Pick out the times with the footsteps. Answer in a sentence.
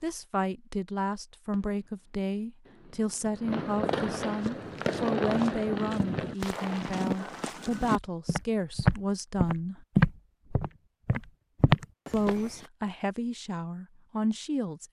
You can hear the footsteps from 4.3 to 12.5 s.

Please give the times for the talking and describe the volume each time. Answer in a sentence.
The talking can be heard from 0.0 to 9.8 s, at a steady volume; and briefly from 12.1 to 14.8 s.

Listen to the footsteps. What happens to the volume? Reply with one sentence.
The loudness of the footsteps goes up.